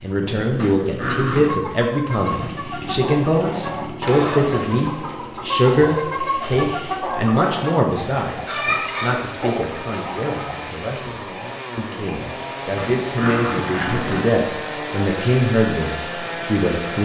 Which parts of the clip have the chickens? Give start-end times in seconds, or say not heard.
1.5-10.7.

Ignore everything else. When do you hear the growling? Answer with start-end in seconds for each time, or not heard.
0.6-1.6, 8.7-9.7, 12.8-14.4.